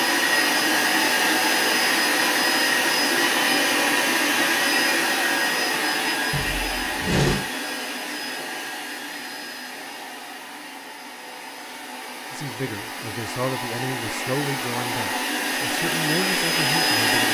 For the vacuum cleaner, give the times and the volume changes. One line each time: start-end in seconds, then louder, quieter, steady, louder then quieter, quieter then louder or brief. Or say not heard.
0.0-17.2 quieter then louder.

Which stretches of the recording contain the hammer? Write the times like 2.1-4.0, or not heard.
not heard.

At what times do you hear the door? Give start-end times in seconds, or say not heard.
6.3-7.5.